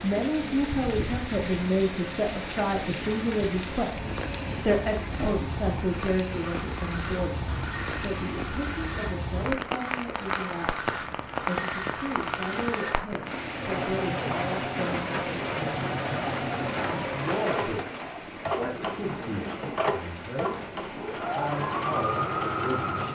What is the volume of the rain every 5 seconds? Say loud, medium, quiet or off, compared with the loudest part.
loud, loud, loud, loud, medium.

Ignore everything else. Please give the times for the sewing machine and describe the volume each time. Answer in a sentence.
The sewing machine can be heard from 0.0 to 23.0 s, getting louder.